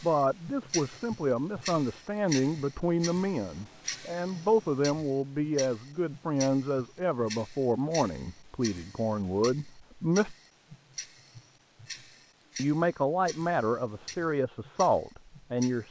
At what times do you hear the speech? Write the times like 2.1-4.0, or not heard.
0.0-10.3, 12.6-15.8.